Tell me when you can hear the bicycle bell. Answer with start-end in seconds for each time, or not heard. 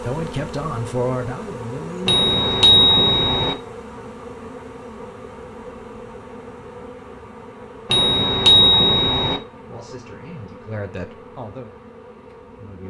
2.0-3.5, 7.8-9.4.